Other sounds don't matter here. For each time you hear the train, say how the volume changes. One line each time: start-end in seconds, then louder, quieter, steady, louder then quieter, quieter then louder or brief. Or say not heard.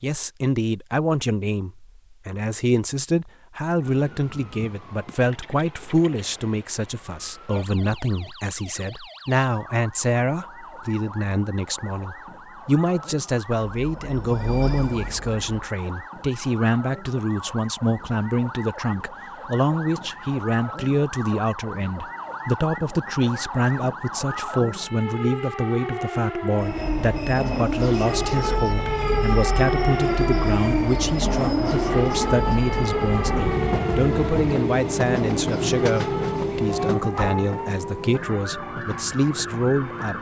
13.8-15.7 brief
26.6-40.1 louder then quieter.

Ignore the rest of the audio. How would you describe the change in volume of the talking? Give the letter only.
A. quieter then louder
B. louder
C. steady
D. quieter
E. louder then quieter
C.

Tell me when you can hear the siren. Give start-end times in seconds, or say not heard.
3.8-40.1.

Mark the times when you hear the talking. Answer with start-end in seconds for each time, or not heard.
0.0-40.1.